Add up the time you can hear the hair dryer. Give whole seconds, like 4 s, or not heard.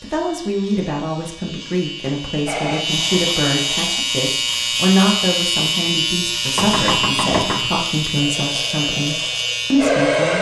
4 s.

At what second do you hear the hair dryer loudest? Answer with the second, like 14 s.
10 s.